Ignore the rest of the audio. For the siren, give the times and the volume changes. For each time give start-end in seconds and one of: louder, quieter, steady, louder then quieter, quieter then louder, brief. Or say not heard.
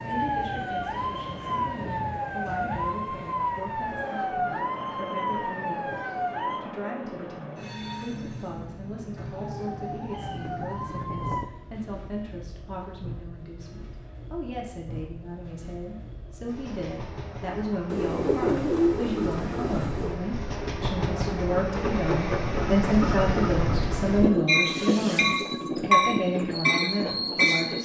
0.0-6.6 steady
9.3-11.4 brief.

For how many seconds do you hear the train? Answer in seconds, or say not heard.
28 s.